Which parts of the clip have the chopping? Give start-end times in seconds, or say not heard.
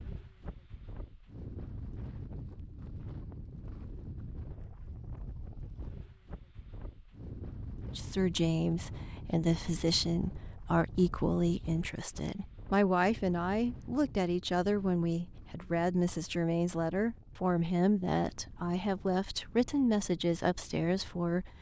not heard.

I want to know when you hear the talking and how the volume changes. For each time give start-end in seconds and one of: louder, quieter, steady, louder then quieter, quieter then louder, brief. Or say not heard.
7.8-21.5 steady.